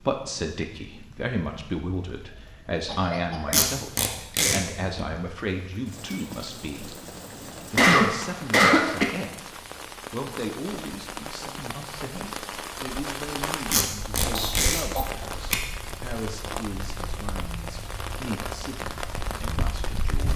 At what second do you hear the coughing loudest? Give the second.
8 s.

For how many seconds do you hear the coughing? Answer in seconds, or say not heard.
3 s.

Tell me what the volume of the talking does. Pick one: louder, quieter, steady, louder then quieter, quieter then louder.
quieter.